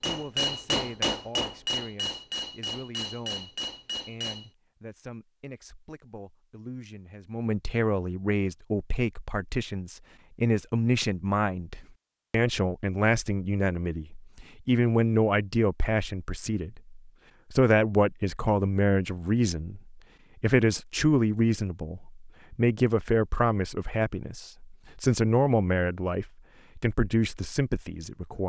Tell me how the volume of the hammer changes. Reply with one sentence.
The loudness of the hammer goes down.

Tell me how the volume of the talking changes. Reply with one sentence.
The loudness of the talking goes up.